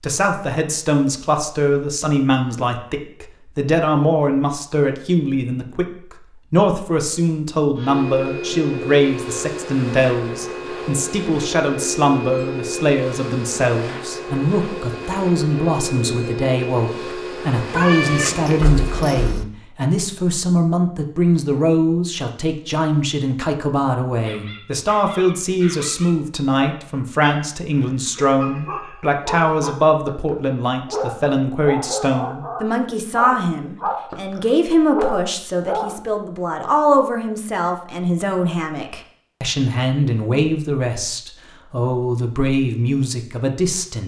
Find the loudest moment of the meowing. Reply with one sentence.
The volume of the meowing peaks at 18 seconds.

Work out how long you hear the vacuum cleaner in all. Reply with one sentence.
The vacuum cleaner can be heard for 12 seconds in total.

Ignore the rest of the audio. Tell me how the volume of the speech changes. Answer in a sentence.
The loudness of the speech stays about the same.